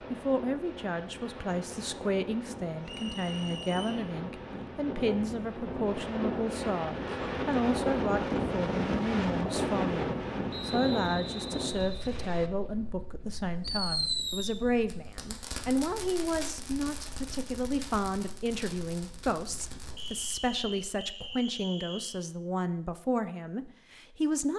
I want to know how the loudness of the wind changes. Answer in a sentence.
The loudness of the wind goes up, then down.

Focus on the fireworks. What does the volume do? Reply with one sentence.
The volume of the fireworks goes down.